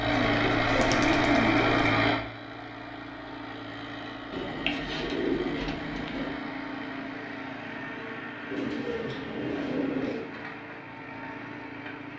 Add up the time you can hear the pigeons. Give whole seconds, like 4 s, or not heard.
6 s.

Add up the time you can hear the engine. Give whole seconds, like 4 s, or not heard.
12 s.